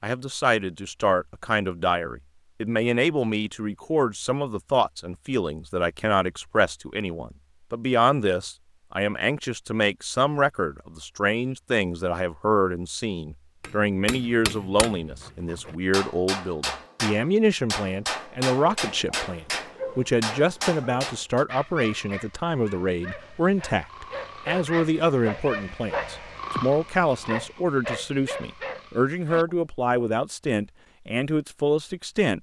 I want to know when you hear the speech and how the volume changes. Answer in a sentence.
The speech can be heard from 0.0 to 32.3 s, at a steady volume.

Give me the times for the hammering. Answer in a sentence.
The hammering can be heard from 13.6 to 21.4 s.